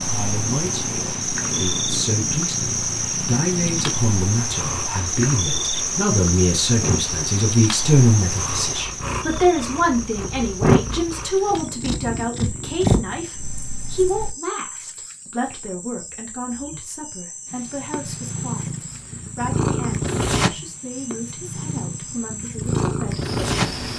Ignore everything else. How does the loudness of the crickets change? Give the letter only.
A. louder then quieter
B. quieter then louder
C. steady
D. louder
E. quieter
E.